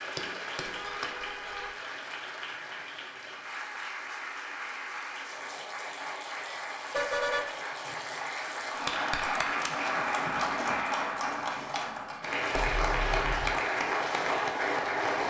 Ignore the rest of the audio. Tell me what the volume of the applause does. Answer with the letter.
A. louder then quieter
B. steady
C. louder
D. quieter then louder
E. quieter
C.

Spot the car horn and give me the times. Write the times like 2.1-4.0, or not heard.
0.6-1.8, 6.4-8.3, 12.5-13.6.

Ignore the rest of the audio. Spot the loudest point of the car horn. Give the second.
7 s.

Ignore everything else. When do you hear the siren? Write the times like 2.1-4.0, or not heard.
not heard.